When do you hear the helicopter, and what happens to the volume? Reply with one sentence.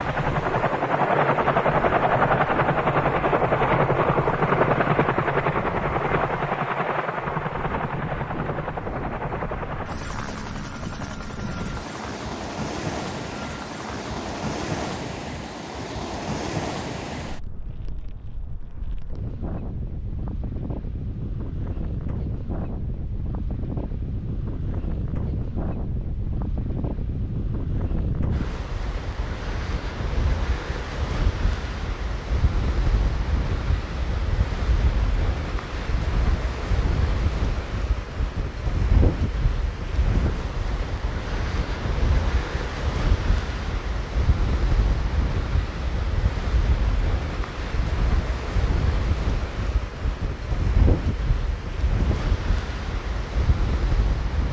The helicopter can be heard from 0.0 to 14.8 s, getting quieter.